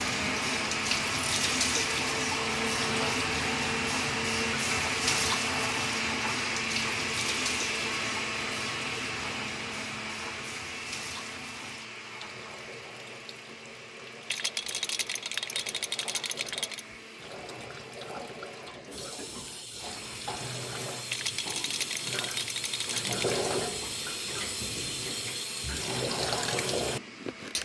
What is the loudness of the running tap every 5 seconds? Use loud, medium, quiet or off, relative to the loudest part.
loud, loud, quiet, medium, loud, loud.